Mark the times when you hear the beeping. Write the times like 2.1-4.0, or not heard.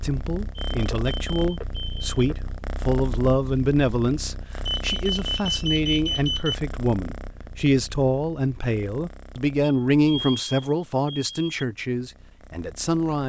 0.7-2.4, 4.7-6.5, 9.6-11.7.